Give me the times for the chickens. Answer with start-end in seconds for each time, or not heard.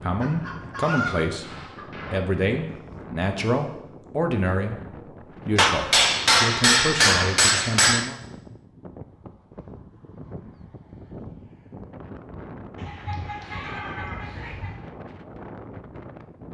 0.2-1.9, 12.8-14.8.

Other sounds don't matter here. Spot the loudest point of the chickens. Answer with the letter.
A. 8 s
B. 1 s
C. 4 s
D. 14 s
B.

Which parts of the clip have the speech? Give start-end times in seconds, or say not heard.
0.0-1.5, 2.1-8.2.